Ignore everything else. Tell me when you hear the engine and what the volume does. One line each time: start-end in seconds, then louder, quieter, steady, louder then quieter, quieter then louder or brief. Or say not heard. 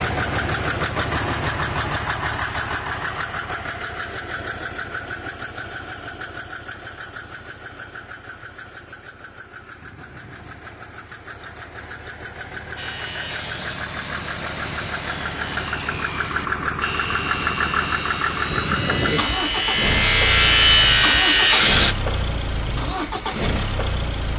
0.0-24.3 quieter then louder.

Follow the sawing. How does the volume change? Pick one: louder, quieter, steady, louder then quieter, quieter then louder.
louder.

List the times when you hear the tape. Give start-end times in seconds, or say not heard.
not heard.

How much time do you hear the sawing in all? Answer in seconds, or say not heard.
9 s.